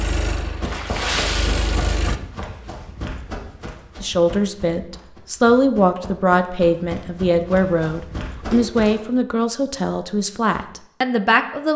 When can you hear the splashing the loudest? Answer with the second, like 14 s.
1 s.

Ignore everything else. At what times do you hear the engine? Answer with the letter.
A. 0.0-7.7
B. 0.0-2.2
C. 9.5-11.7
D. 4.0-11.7
B.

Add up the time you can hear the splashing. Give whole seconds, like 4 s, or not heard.
2 s.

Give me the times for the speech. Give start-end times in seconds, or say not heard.
4.0-11.7.